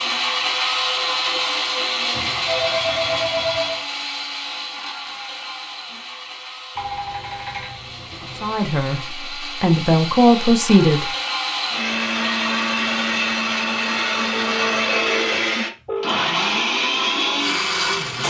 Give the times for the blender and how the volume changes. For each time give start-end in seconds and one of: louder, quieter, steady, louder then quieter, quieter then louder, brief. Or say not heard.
0.0-18.2 quieter then louder.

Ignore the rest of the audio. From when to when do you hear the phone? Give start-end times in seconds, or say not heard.
2.1-3.9, 6.8-8.6, 14.3-16.1.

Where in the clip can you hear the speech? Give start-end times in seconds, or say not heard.
8.4-11.1.